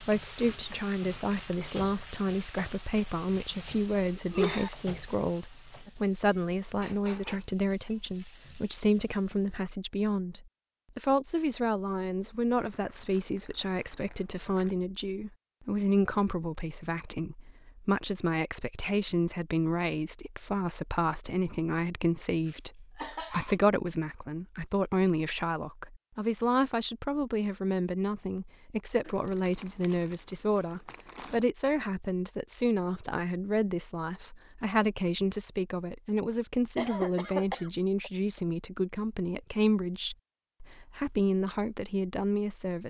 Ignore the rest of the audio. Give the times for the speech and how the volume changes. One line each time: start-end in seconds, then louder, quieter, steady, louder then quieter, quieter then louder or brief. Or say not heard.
0.0-42.8 steady.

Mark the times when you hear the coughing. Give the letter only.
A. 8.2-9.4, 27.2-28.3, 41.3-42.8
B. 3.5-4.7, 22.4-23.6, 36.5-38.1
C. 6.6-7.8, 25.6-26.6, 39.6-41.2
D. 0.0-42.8
B.